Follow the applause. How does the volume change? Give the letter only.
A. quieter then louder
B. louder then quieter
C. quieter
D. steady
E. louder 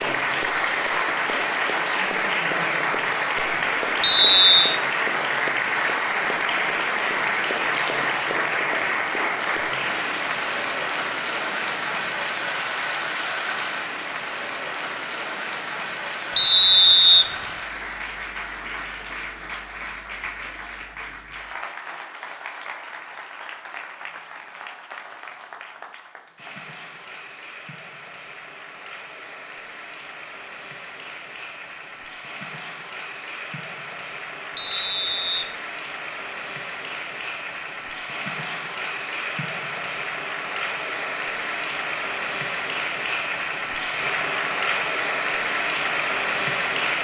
A.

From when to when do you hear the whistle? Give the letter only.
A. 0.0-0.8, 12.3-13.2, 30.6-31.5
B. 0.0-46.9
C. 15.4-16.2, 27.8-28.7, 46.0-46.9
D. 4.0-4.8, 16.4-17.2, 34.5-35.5
D.